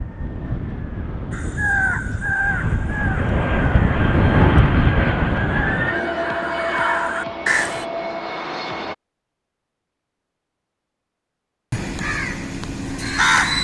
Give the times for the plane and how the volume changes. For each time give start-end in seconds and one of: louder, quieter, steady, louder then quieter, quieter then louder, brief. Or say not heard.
0.0-8.9 louder then quieter.